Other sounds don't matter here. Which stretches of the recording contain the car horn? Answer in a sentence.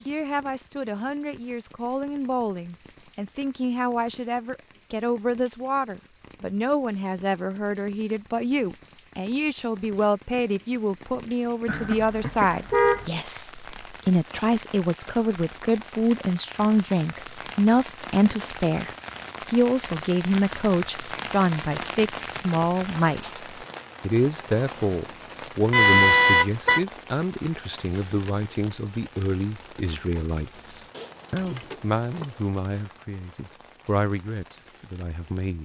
You can hear the car horn from 11.7 to 13.1 s and from 25.7 to 26.8 s.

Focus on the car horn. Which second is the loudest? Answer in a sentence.
The loudest moment of the car horn is at 26 seconds.